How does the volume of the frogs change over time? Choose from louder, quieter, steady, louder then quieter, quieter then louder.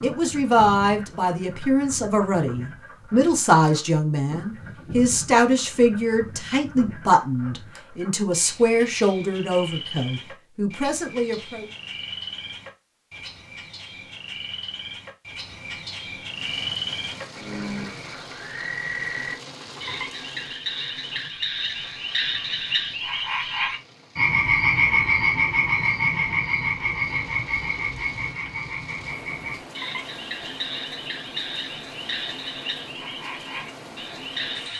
louder then quieter.